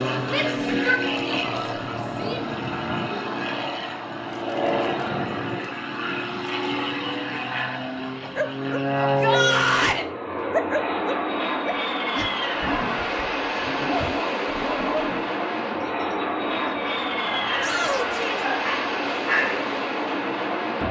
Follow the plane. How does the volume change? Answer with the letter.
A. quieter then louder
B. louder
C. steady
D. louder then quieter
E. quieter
C.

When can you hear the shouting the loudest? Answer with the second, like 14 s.
10 s.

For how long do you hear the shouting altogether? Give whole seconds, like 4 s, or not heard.
4 s.